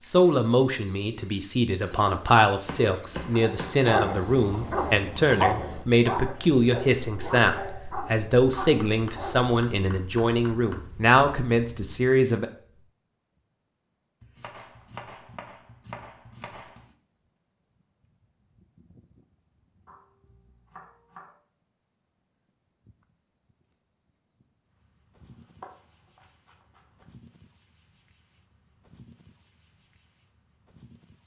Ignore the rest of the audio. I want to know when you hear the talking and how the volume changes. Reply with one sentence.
You can hear the talking from 0.1 to 12.4 s, at a steady volume.